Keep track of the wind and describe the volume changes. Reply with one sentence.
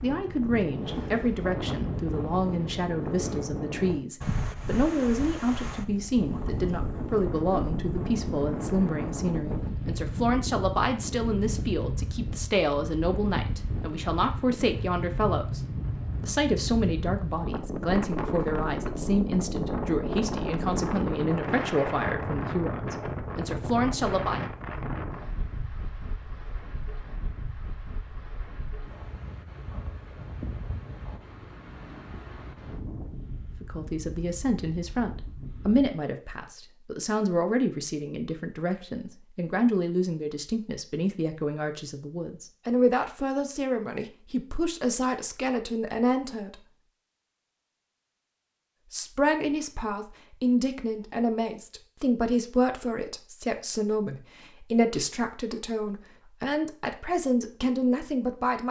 The loudness of the wind goes down.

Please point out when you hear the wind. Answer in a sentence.
The wind can be heard from 0.0 to 35.9 s.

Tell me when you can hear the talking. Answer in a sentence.
The talking can be heard from 0.0 to 24.4 s, from 33.6 to 46.5 s and from 48.9 to 58.6 s.